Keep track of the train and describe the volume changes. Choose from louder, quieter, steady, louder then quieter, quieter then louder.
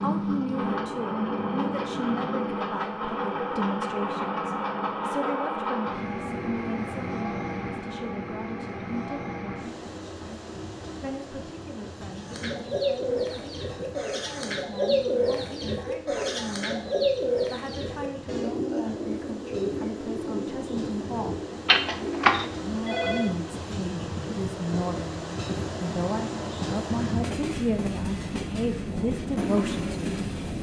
quieter then louder.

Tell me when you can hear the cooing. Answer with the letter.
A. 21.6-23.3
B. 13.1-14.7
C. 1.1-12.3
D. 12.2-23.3
D.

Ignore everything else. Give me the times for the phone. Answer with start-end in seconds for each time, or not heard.
21.6-23.3.